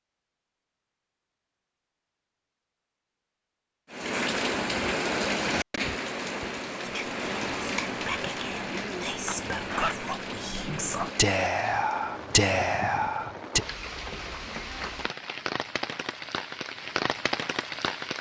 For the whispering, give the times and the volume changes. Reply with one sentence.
You can hear the whispering from 6.8 to 13.7 s, getting louder.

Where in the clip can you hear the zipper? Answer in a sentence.
The zipper can be heard from 9.2 to 10.0 s.